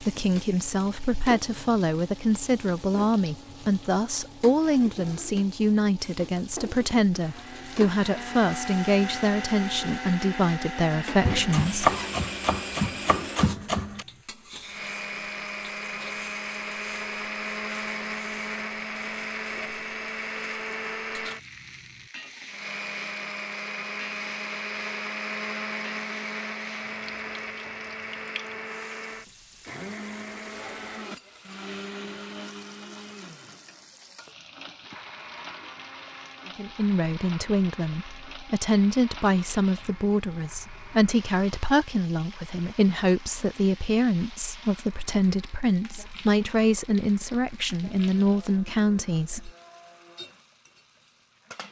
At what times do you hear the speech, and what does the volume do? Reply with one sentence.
The speech can be heard from 0.0 to 11.9 s, at a steady volume; and from 36.5 to 49.5 s, at a steady volume.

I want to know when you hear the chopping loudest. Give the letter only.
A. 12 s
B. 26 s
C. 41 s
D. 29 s
A.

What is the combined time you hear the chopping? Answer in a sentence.
You can hear the chopping for 3 seconds altogether.